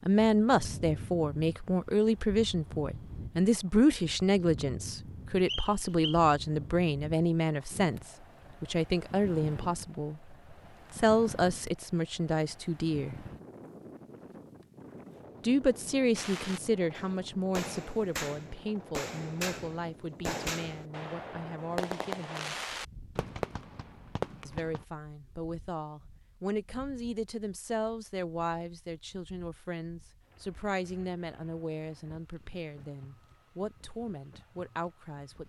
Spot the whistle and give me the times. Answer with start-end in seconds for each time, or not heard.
5.5-6.2.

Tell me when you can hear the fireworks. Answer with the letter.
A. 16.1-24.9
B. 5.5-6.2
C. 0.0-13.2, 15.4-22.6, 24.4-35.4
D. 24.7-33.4
A.